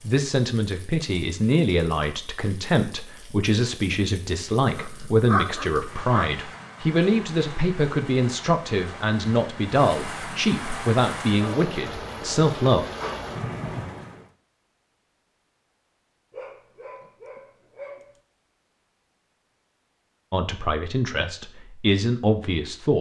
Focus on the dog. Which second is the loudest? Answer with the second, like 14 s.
5 s.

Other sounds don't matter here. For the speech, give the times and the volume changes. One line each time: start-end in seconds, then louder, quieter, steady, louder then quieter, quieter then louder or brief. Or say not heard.
0.0-12.8 steady
20.3-22.9 brief.